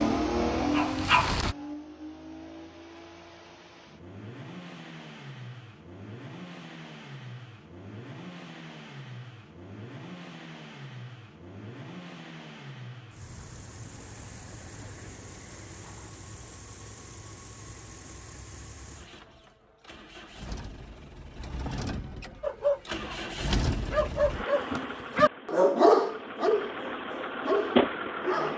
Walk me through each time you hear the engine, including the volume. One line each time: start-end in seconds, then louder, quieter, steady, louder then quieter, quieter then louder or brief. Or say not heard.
0.0-28.5 quieter then louder.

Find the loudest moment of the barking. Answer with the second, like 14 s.
26 s.